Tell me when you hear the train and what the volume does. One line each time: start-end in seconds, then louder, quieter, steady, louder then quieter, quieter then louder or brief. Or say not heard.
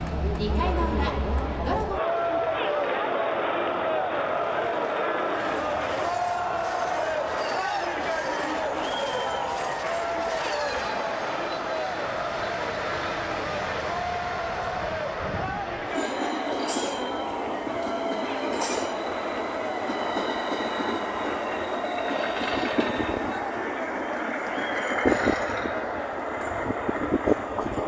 0.0-27.8 louder.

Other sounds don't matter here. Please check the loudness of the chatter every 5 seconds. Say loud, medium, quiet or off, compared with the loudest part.
loud, loud, loud, medium, medium, medium.